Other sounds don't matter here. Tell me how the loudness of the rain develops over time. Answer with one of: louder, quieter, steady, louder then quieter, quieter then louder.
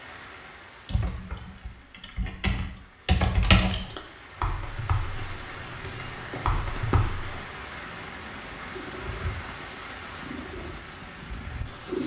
louder.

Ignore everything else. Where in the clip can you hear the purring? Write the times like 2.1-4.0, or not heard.
5.5-12.0.